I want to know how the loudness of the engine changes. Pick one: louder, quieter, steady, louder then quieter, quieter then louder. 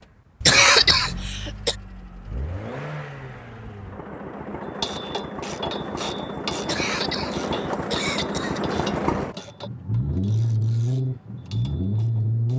louder.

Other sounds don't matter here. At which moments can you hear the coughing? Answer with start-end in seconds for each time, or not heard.
0.4-1.8, 6.6-8.6.